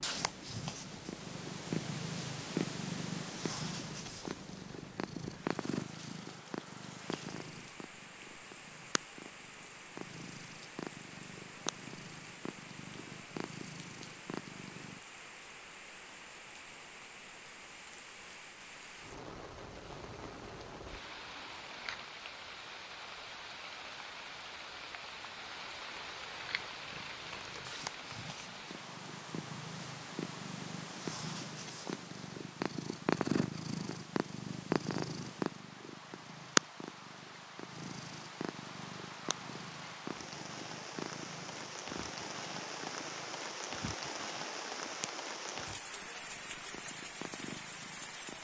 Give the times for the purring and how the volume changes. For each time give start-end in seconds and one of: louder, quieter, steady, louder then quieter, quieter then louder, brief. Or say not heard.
0.0-15.0 quieter
26.4-48.3 louder then quieter.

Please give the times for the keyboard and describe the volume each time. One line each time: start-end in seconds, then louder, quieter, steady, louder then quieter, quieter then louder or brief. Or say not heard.
not heard.